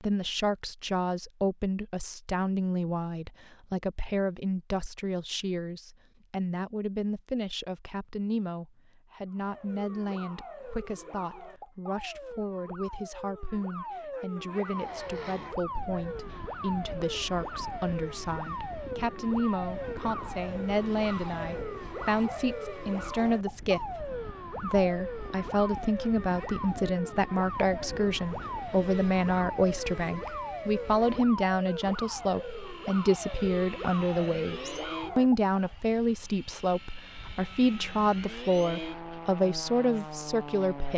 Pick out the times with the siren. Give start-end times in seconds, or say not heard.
9.3-35.8.